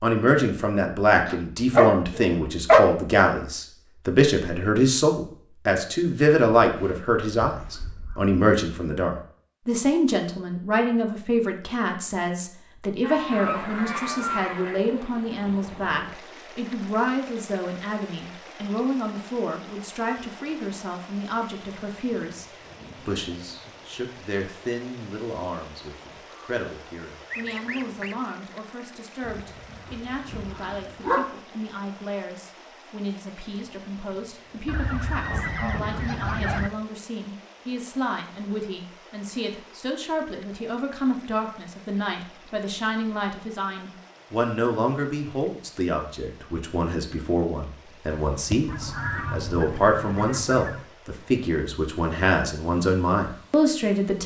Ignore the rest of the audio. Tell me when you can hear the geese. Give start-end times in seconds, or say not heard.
6.6-8.3, 13.0-14.8, 26.9-28.2, 34.6-36.7, 48.3-50.9.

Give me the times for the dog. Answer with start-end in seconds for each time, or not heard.
1.2-2.8, 29.2-31.2.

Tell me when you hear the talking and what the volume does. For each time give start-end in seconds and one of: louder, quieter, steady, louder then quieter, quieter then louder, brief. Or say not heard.
0.0-54.2 quieter then louder.